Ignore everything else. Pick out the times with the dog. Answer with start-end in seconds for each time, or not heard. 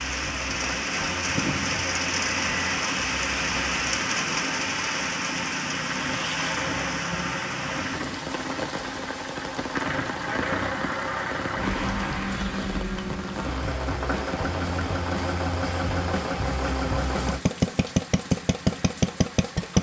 not heard.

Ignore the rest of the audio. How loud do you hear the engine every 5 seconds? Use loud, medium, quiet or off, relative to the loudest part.
quiet, medium, loud, loud.